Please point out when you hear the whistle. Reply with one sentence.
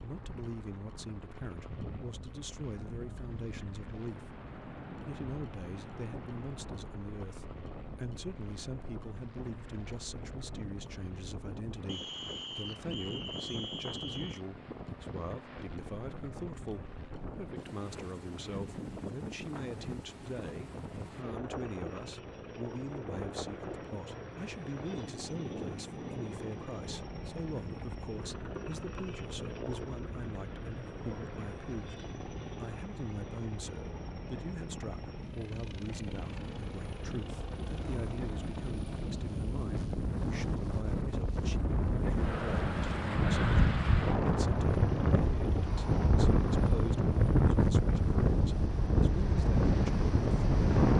You can hear the whistle from 11.8 to 14.4 s.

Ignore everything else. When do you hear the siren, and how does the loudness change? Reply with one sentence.
You can't hear the siren here.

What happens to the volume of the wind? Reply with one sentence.
The loudness of the wind goes up.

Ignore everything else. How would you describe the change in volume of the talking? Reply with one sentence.
The loudness of the talking stays about the same.